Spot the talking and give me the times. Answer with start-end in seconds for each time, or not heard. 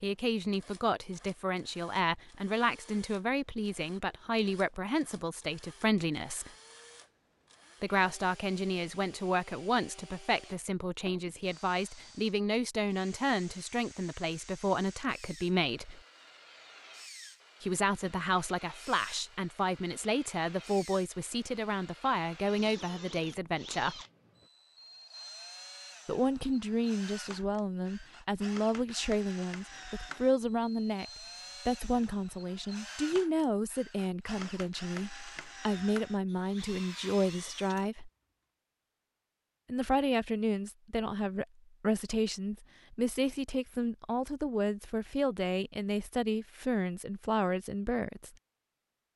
0.0-6.5, 7.8-16.0, 17.6-23.9, 26.1-31.1, 31.6-38.1, 39.6-48.3.